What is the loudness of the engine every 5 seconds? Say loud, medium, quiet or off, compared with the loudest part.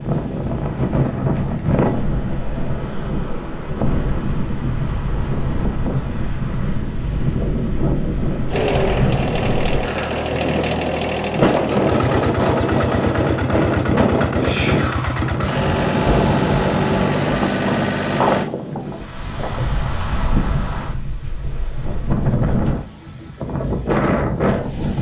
off, loud, loud, loud, off.